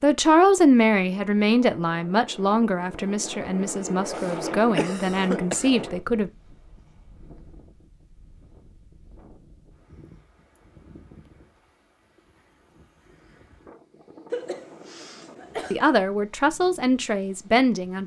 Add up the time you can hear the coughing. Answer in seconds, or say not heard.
3 s.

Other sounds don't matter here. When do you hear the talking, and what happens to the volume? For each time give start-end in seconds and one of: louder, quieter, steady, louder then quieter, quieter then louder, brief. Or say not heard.
0.0-6.3 quieter
15.7-18.0 brief.